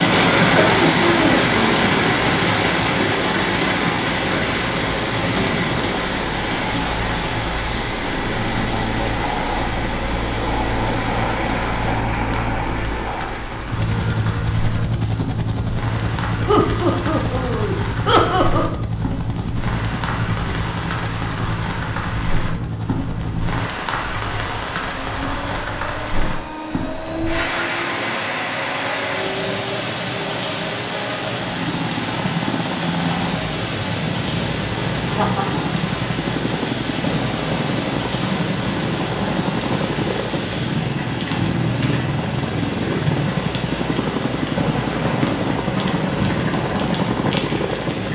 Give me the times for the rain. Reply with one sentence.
The rain can be heard from 0.0 to 48.1 s.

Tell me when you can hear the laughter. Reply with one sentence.
The laughter can be heard from 0.1 to 1.9 s, from 16.4 to 18.8 s and from 35.0 to 35.6 s.